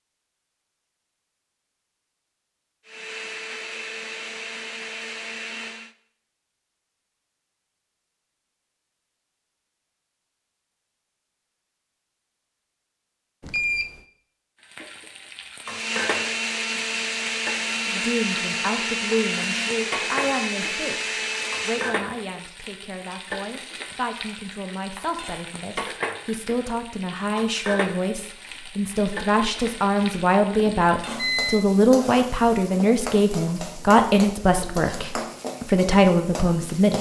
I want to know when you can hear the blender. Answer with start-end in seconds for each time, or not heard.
2.9-6.0, 15.7-22.0.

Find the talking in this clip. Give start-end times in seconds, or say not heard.
17.9-36.9.